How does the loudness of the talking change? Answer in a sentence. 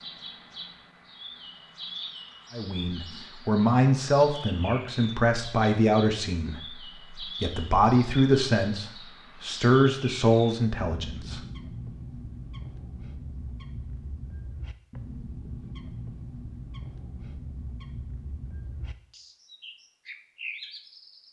The volume of the talking goes down, then up.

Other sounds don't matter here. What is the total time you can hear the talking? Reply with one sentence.
The talking can be heard for 9 seconds in total.